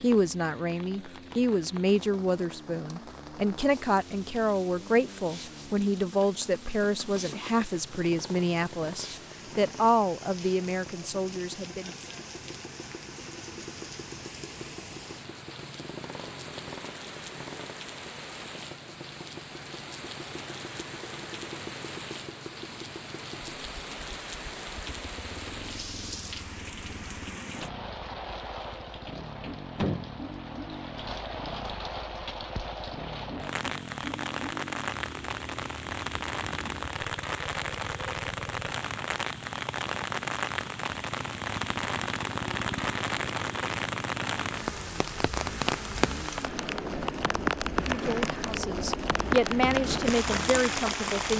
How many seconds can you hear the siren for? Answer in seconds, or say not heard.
not heard.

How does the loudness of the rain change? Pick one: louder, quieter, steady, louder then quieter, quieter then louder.
louder.